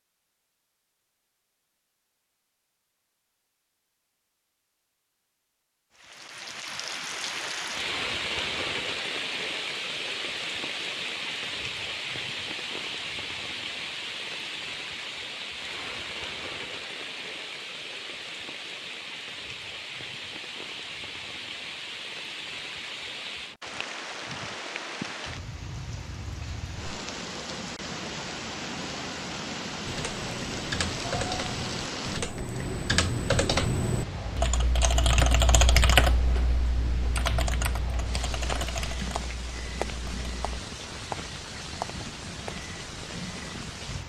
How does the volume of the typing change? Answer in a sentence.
The volume of the typing goes up, then down.